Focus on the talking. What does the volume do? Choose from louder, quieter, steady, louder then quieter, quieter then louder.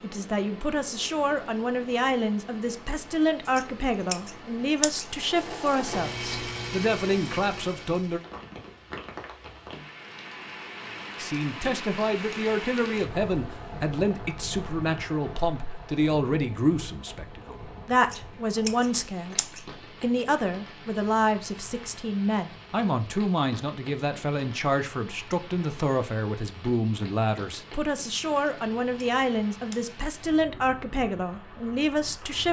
steady.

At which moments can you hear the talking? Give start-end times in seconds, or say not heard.
0.0-8.2, 11.2-32.4.